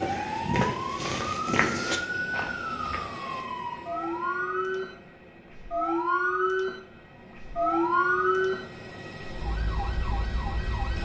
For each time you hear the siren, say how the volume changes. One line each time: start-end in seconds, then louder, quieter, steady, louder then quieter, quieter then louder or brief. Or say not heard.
0.0-11.0 louder then quieter.